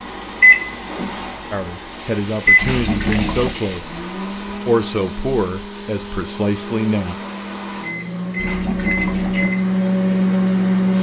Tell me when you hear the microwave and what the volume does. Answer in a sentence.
You can hear the microwave from 0.0 to 10.9 s, getting quieter then louder.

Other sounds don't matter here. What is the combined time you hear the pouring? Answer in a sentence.
You can hear the pouring for 2 seconds altogether.